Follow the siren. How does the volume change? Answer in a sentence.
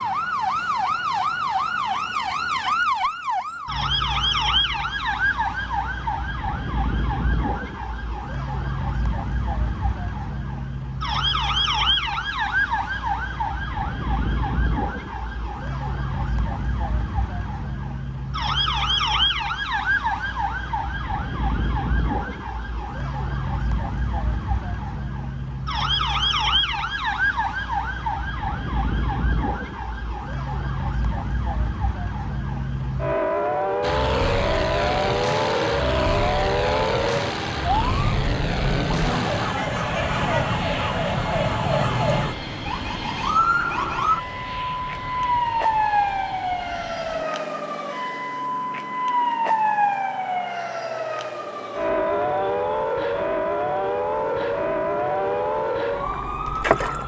The loudness of the siren stays about the same.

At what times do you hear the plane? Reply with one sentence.
The plane can be heard from 33.8 to 57.0 s.